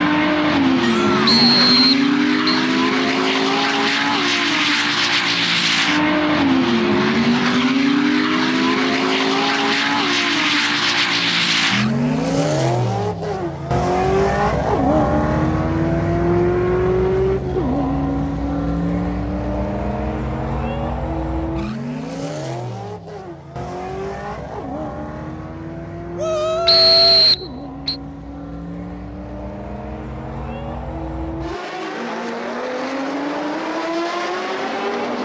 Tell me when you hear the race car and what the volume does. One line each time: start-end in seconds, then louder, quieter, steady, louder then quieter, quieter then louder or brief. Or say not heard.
0.0-35.2 quieter.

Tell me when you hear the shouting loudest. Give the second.
27 s.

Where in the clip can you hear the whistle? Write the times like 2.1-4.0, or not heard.
1.2-2.6, 26.6-27.9.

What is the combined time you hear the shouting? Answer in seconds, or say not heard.
2 s.